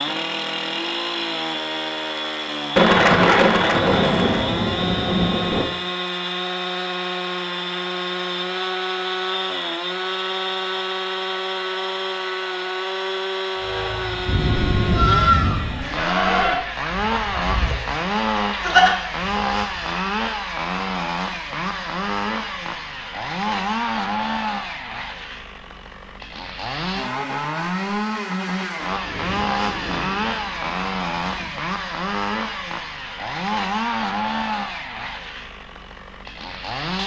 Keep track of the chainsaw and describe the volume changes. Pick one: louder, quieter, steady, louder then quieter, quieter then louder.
steady.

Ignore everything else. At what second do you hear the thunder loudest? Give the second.
3 s.